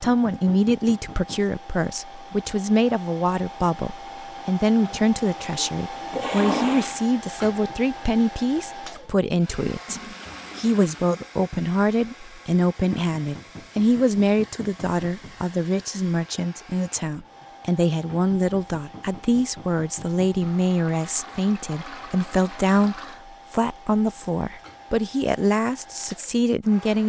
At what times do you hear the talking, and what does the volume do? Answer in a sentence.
You can hear the talking from 0.0 to 27.0 s, at a steady volume.